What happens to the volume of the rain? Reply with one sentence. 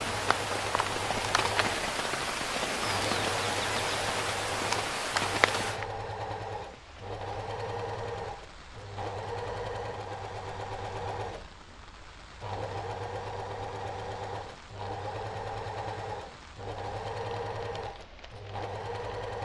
The volume of the rain goes down.